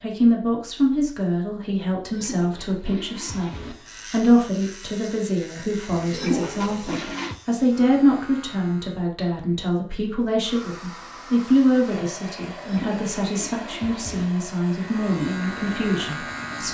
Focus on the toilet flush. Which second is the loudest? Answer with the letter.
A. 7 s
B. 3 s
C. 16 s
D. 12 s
A.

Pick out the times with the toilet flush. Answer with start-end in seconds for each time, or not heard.
1.9-3.8, 5.9-7.3, 12.6-14.2.